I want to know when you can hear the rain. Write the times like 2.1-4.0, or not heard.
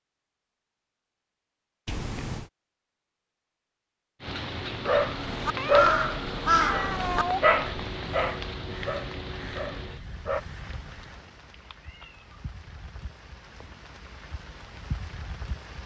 4.2-15.8.